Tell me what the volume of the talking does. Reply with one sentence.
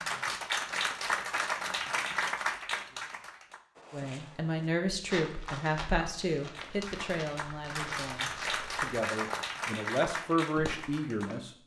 The volume of the talking goes down, then up.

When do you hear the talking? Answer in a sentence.
You can hear the talking from 3.9 to 11.5 s.